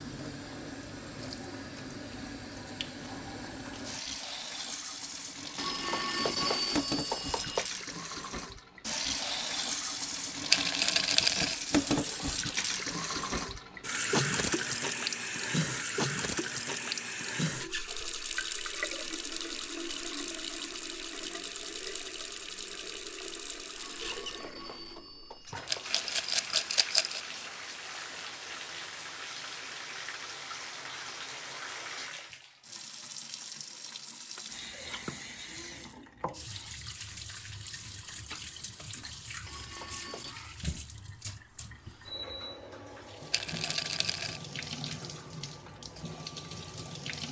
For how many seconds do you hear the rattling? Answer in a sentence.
The rattling can be heard for 4 seconds in total.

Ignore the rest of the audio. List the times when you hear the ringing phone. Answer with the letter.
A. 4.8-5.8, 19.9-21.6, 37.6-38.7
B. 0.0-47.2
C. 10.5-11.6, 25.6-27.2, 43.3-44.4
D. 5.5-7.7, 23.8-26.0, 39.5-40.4
D.